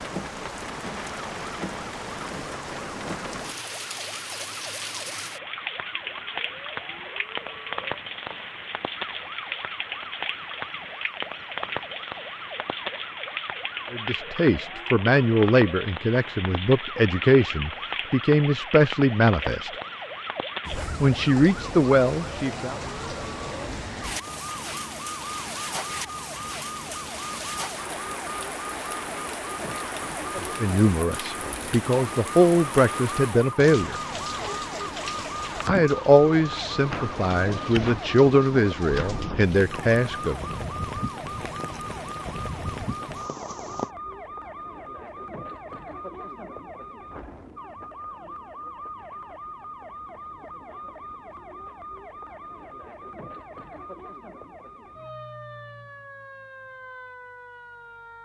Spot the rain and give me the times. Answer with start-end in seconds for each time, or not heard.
0.0-43.9.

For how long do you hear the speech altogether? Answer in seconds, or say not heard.
16 s.